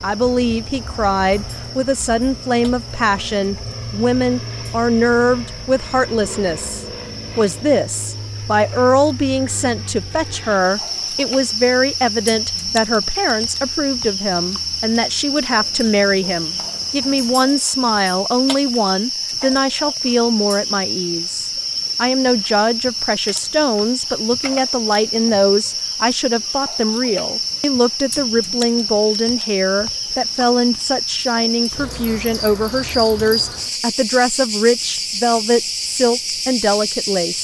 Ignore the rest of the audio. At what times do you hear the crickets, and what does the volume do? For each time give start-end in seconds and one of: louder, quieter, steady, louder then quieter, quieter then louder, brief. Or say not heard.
0.0-37.3 louder.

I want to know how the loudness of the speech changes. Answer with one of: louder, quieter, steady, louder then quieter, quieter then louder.
steady.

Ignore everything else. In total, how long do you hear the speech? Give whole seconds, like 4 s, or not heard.
37 s.